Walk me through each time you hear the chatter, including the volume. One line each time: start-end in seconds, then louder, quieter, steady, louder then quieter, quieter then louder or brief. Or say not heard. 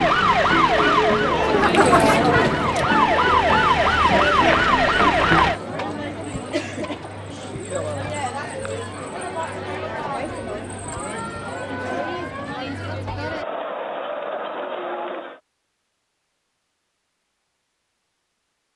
0.1-15.4 quieter.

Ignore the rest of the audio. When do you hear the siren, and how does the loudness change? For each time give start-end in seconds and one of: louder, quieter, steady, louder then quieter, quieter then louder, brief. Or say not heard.
0.0-5.6 quieter then louder.